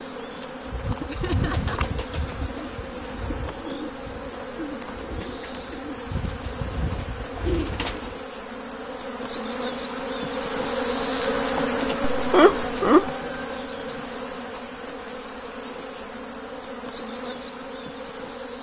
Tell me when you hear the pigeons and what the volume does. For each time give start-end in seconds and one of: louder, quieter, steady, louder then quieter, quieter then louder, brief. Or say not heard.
0.7-8.2 quieter then louder.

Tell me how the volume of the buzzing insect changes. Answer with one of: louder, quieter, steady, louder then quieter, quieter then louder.
louder then quieter.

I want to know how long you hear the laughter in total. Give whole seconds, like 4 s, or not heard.
2 s.